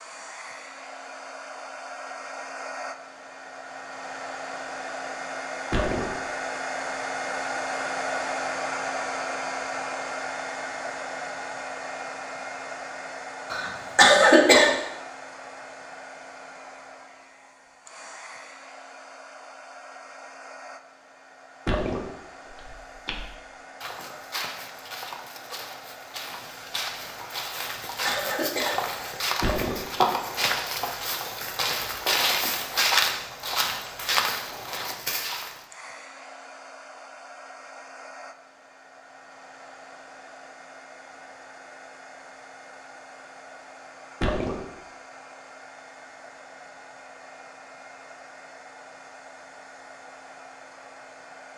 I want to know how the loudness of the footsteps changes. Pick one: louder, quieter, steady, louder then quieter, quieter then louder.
louder.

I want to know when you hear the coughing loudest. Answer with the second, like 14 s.
14 s.